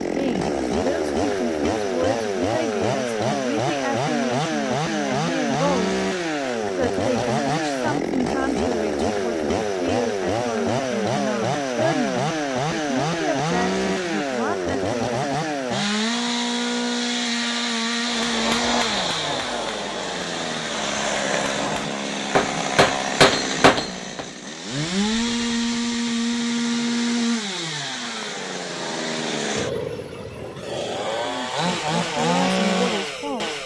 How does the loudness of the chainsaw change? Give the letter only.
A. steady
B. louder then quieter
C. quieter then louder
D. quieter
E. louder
A.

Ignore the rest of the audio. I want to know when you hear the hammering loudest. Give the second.
23 s.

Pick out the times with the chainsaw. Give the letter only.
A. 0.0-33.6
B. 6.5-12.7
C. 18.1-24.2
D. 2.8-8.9
A.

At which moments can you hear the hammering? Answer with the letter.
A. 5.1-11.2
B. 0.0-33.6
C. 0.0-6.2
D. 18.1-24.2
D.